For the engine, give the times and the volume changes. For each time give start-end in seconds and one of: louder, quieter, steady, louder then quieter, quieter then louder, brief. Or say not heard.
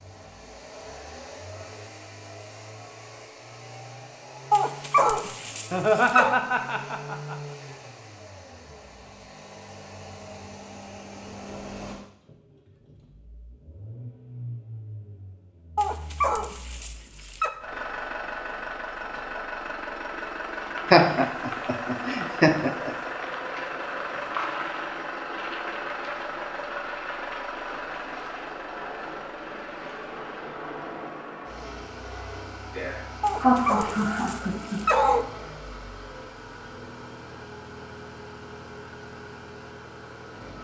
0.0-40.6 louder then quieter.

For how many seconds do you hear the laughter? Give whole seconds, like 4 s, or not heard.
6 s.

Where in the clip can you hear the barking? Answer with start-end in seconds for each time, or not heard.
4.5-6.3, 15.8-17.5, 33.2-35.2.